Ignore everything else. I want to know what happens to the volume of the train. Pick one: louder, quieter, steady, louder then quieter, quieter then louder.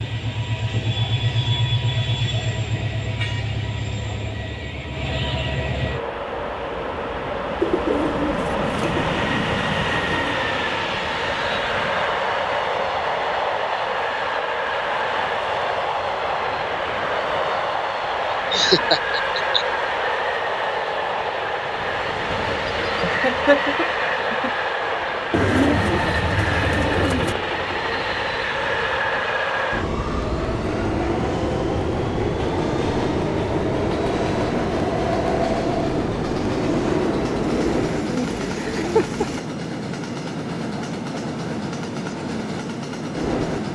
steady.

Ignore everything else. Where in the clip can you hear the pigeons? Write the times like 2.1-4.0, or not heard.
7.6-9.1, 25.3-27.4, 37.4-39.4.